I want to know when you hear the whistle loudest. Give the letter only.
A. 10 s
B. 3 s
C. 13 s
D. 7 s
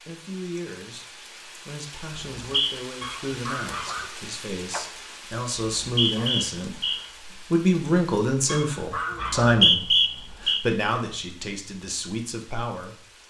A.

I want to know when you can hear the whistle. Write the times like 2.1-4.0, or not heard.
2.1-2.7, 5.5-7.0, 9.2-10.6.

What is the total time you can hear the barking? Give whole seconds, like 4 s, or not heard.
2 s.